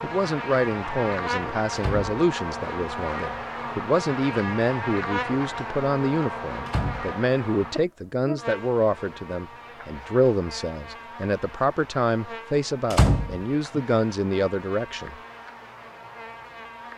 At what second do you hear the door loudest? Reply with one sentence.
The loudest moment of the door is at 13 seconds.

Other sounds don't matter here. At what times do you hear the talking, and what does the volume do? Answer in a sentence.
You can hear the talking from 0.0 to 15.2 s, at a steady volume.